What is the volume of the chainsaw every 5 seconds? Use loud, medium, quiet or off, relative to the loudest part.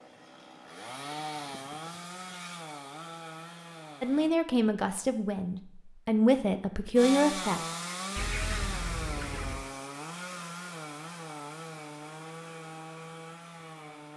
medium, loud, medium.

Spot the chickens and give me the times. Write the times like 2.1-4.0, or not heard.
8.2-9.7.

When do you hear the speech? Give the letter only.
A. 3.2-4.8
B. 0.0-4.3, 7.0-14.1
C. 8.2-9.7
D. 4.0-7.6
D.